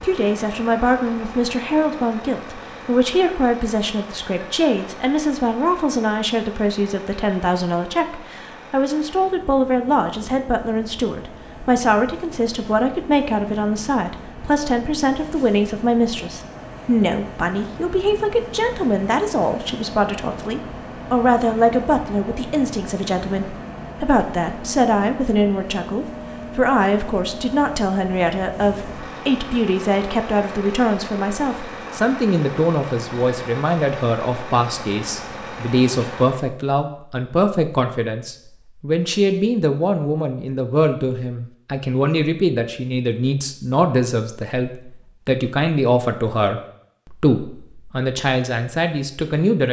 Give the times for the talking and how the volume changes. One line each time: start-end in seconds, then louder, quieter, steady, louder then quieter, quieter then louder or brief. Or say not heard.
0.0-49.6 steady.